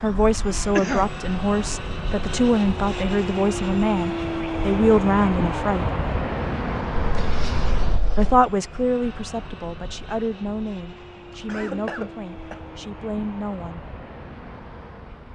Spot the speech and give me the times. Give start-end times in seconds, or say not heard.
0.0-5.8, 8.2-13.8.